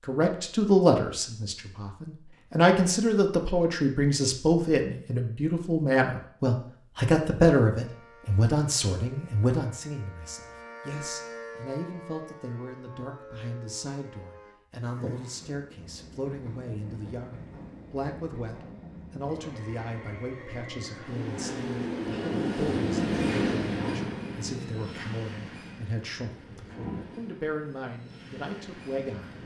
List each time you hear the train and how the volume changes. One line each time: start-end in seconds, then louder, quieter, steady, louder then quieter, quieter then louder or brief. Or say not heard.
14.8-29.4 louder then quieter.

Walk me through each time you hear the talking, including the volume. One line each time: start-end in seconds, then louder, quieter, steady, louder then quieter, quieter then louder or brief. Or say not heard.
0.1-29.4 quieter.